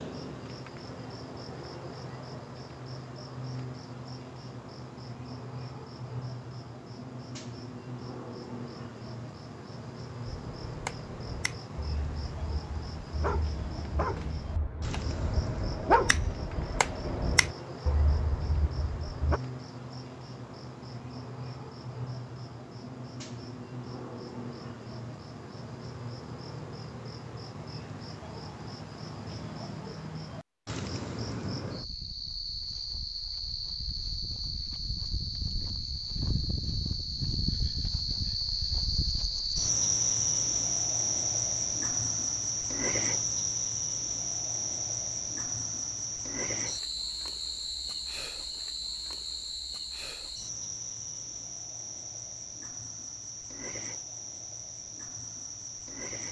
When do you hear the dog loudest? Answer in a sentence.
The volume of the dog peaks at 16 seconds.